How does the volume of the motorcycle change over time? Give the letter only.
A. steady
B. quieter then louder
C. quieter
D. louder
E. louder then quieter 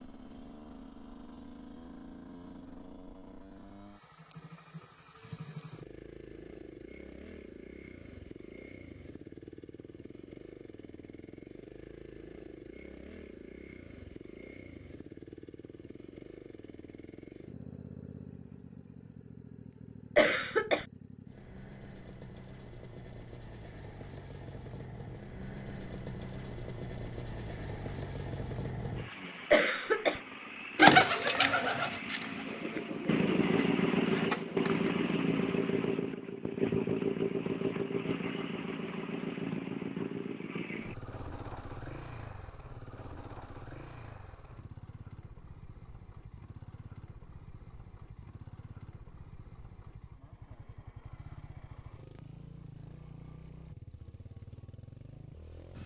E.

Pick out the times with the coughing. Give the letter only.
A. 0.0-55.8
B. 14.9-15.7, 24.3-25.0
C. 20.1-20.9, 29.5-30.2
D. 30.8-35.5
C.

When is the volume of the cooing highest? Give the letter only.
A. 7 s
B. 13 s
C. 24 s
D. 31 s
D.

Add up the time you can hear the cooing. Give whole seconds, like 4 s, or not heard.
5 s.